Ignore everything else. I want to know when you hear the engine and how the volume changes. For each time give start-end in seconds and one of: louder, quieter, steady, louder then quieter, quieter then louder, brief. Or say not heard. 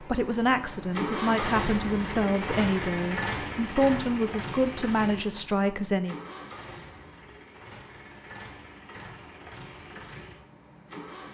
0.0-11.2 quieter.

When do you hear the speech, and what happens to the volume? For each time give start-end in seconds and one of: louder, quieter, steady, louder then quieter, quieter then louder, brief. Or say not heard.
0.0-6.2 steady.